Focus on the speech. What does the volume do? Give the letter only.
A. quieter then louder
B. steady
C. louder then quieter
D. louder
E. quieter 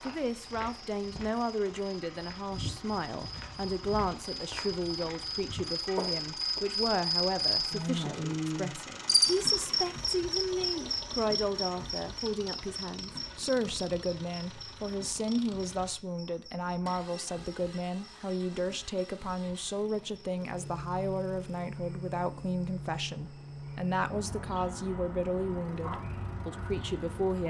B.